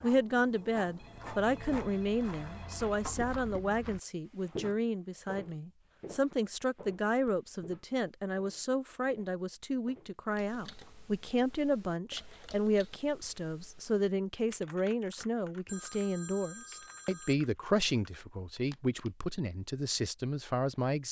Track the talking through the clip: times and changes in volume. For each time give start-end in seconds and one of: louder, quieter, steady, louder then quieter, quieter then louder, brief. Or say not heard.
0.0-21.0 steady.